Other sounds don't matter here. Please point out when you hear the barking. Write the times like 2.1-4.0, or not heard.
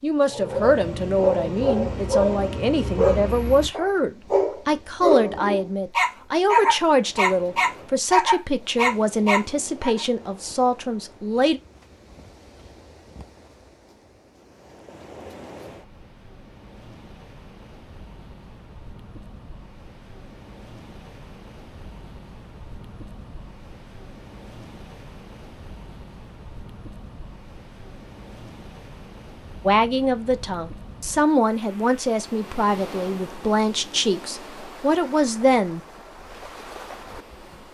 0.2-10.1.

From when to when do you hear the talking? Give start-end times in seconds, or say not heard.
0.0-11.6, 29.6-35.8.